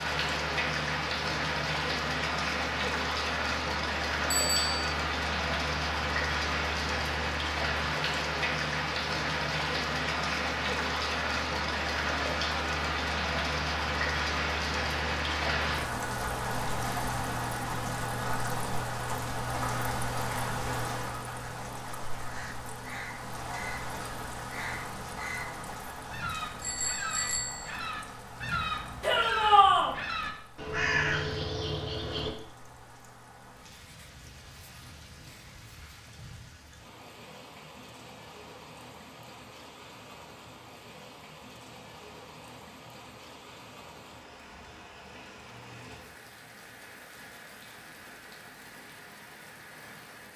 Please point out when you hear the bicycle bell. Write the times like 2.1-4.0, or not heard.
4.3-4.7, 26.6-27.7.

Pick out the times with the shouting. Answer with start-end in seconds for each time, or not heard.
29.0-29.9.